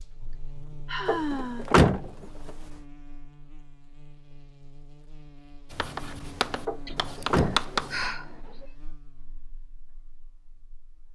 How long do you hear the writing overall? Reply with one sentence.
You can hear the writing for 2 seconds altogether.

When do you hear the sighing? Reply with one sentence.
You can hear the sighing from 0.2 to 1.6 s and from 6.8 to 8.7 s.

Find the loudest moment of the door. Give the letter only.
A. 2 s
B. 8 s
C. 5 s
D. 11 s
A.